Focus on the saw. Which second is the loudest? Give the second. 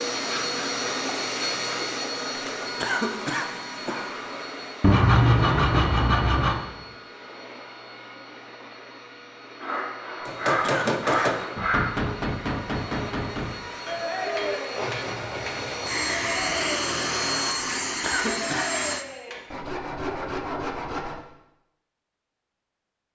5 s.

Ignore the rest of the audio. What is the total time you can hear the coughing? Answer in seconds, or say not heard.
3 s.